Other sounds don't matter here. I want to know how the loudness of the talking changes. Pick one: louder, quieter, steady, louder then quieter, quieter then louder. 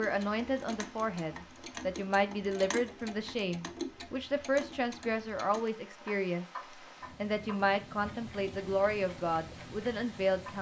steady.